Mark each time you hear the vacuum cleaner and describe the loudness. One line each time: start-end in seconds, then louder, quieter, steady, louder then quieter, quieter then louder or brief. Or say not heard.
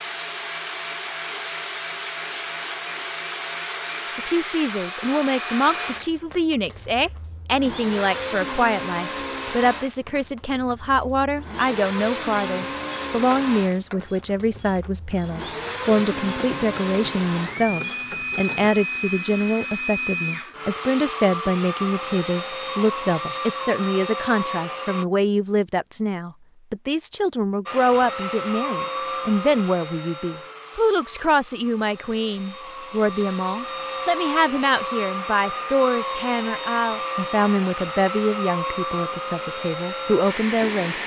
0.0-25.1 steady
27.6-41.0 quieter then louder.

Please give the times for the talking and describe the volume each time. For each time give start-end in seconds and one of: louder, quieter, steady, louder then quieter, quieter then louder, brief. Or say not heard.
4.2-41.0 steady.